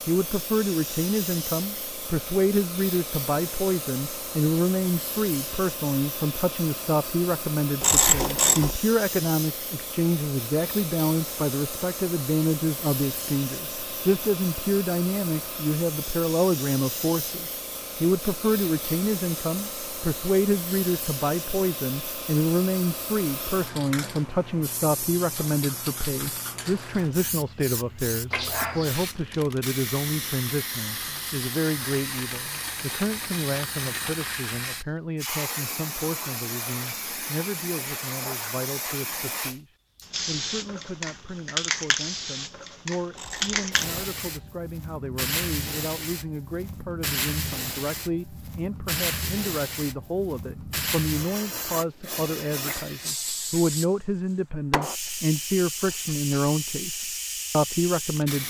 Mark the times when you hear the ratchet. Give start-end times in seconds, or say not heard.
7.8-8.8, 43.1-44.0.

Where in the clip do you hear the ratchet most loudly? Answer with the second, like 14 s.
8 s.